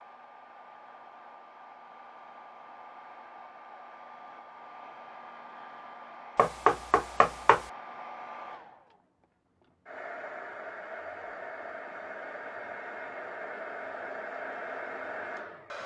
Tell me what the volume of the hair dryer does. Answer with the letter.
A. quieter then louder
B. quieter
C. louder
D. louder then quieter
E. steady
C.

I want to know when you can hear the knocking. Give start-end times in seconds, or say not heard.
6.3-7.7.